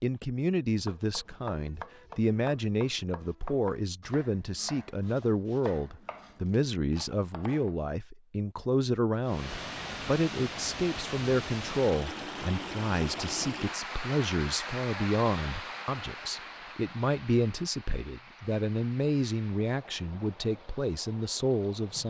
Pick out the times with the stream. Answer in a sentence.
The stream can be heard from 9.2 to 22.0 s.